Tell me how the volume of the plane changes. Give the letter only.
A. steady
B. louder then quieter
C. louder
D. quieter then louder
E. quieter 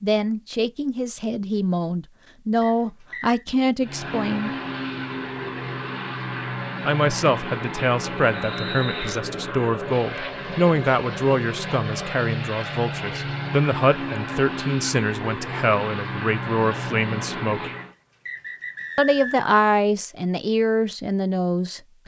A.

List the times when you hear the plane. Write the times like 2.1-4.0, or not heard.
3.8-17.9.